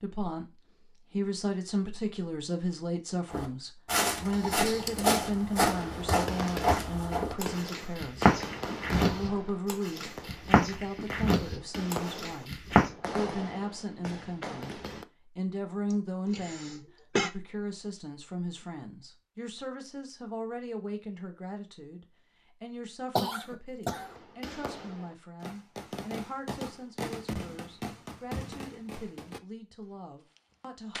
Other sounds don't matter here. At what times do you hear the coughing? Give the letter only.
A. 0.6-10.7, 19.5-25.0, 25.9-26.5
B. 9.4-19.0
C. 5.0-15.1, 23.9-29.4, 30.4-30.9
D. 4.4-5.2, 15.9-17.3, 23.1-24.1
D.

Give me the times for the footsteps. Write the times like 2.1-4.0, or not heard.
3.3-12.9.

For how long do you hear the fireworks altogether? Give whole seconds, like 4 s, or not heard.
16 s.